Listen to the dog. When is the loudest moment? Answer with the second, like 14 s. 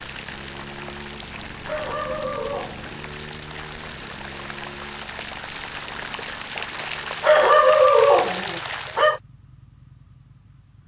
8 s.